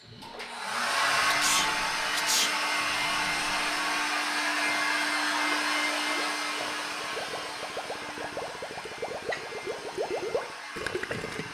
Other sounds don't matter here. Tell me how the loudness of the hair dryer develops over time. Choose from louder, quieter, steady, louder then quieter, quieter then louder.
quieter.